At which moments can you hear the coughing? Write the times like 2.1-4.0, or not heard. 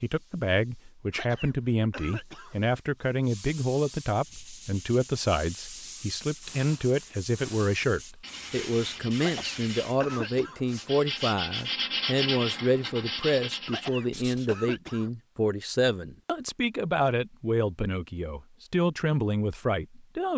1.1-2.5, 9.2-10.8, 13.7-15.1.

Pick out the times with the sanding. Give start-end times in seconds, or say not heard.
4.1-14.6.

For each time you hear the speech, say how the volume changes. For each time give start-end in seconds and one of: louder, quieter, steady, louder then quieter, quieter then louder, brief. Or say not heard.
0.0-20.3 steady.